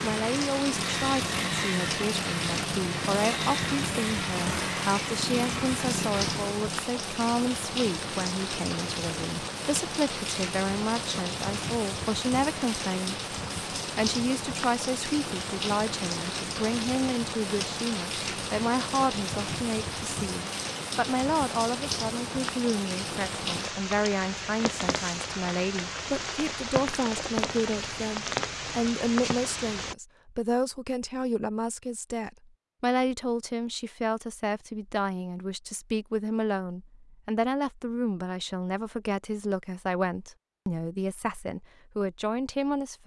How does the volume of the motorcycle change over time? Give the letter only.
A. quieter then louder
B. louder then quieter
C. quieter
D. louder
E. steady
E.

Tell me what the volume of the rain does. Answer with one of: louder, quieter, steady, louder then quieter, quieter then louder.
steady.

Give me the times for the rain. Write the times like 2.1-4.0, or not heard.
0.0-29.9.